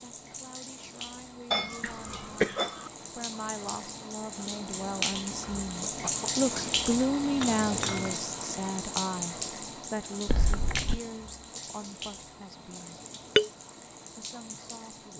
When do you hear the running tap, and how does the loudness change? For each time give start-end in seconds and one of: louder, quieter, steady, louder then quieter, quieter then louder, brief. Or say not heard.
0.0-15.1 louder then quieter.